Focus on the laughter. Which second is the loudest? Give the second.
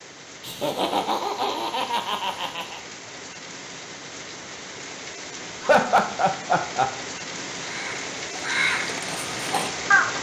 6 s.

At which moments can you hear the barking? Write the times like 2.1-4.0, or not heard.
not heard.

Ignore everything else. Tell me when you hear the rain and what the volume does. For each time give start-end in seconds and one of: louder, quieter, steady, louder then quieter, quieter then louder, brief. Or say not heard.
0.0-10.1 louder.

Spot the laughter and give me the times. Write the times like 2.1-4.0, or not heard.
0.4-2.8, 5.6-6.9.